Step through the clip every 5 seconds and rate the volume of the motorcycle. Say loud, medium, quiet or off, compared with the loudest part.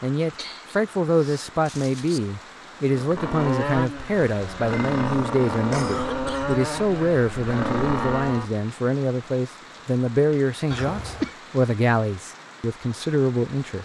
loud, loud, off.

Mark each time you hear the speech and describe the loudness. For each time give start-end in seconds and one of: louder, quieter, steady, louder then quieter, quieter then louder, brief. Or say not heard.
0.0-13.8 steady.